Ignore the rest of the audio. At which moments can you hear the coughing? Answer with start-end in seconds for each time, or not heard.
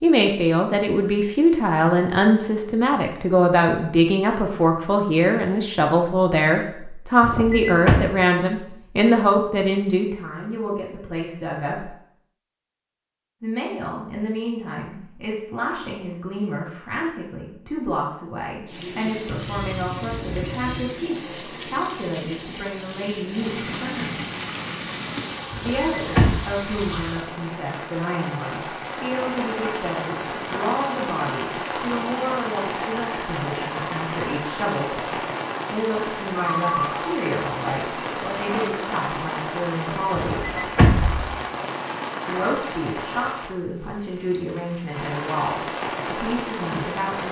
not heard.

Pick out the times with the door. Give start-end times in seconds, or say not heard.
7.2-8.1, 25.5-26.4, 40.1-41.4.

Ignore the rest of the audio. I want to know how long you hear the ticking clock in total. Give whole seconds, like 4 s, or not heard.
not heard.